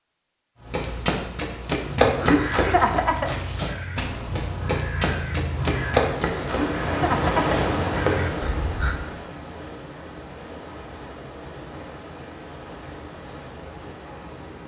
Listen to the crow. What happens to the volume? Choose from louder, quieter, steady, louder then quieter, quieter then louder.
quieter then louder.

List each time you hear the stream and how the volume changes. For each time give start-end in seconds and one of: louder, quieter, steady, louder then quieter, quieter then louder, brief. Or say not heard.
5.7-14.6 quieter.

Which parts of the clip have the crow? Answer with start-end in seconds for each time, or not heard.
1.9-8.9.